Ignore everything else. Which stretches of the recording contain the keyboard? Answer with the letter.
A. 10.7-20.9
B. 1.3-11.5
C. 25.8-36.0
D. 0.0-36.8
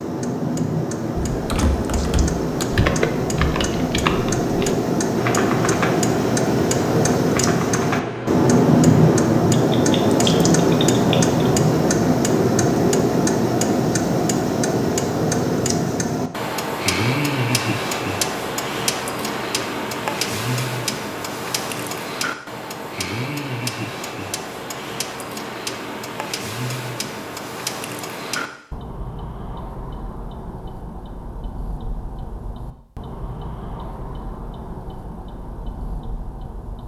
B.